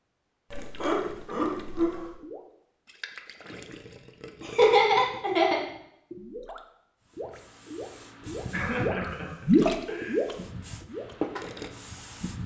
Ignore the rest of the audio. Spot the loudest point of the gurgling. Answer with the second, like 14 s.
10 s.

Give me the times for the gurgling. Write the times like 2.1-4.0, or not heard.
0.5-11.7.